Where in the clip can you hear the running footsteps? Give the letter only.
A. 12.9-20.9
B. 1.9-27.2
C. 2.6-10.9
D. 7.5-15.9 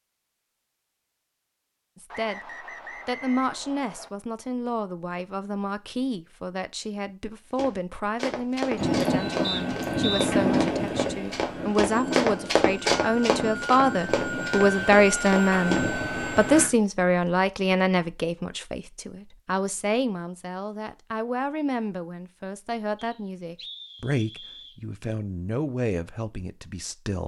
D.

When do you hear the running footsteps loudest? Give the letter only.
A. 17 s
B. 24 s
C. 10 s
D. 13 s
D.